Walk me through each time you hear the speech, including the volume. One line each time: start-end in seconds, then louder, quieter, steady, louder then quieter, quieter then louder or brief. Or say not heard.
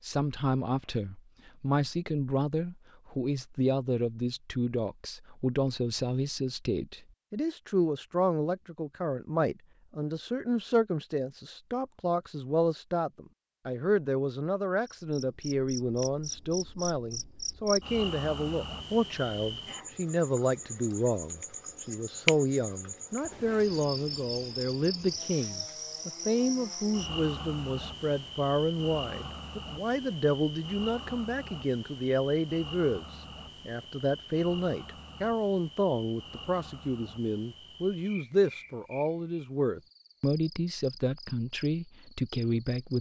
0.0-42.9 steady.